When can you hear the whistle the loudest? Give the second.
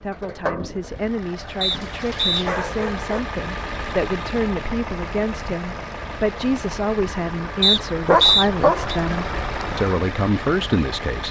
8 s.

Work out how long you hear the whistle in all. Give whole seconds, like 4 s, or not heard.
2 s.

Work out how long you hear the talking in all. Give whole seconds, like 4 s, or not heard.
11 s.